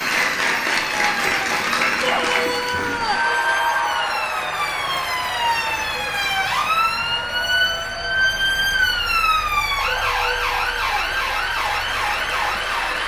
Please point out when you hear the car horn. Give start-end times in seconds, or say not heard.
not heard.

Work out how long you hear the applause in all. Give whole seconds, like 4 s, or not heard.
13 s.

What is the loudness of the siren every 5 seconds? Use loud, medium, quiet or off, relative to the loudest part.
medium, loud, loud.